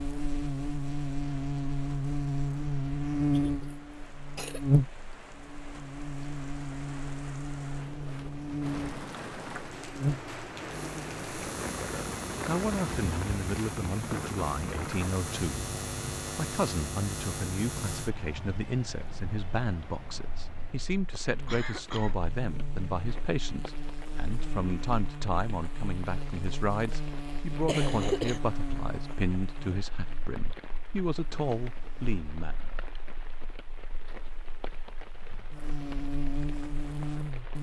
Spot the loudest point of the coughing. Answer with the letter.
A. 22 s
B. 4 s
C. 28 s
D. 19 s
C.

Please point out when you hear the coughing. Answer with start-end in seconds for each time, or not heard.
3.4-4.7, 21.4-22.1, 27.6-28.4.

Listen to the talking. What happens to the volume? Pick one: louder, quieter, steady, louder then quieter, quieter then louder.
steady.